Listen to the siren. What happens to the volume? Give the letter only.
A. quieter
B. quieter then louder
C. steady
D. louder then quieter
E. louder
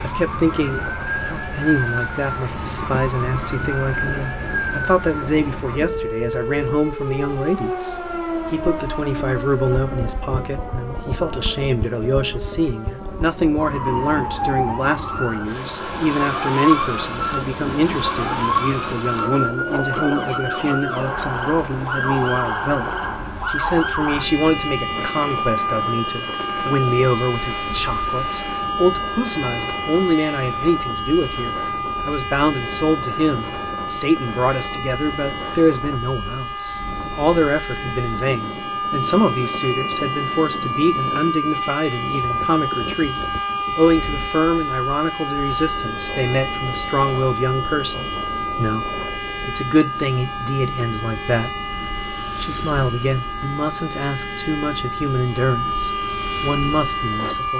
C.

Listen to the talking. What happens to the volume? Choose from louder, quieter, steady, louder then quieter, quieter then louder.
steady.